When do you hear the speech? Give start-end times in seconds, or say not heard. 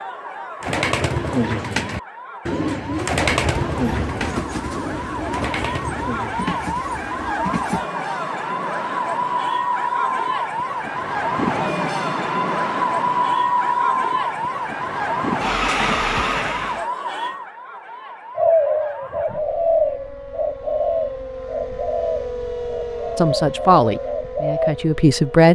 23.1-25.4.